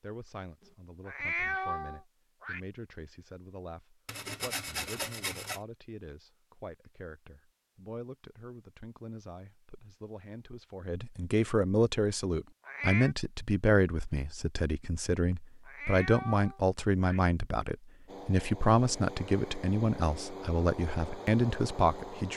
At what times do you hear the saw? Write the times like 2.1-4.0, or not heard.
4.0-5.6.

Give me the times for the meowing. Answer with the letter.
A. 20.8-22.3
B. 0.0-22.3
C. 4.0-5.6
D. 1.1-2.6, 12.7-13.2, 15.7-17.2
D.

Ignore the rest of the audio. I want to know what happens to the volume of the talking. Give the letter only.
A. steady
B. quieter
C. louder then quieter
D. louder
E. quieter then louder
D.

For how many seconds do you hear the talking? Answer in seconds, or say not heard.
22 s.